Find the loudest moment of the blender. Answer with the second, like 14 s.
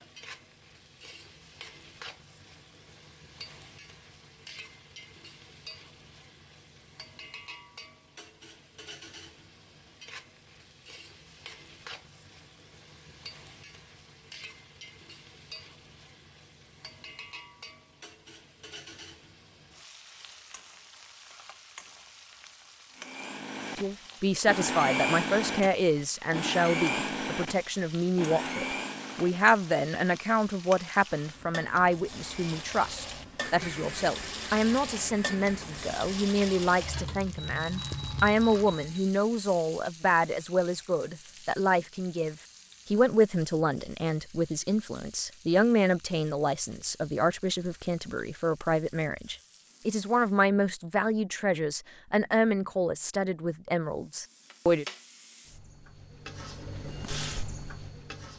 25 s.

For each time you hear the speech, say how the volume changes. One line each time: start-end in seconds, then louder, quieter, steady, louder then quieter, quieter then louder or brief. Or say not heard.
23.8-54.9 steady.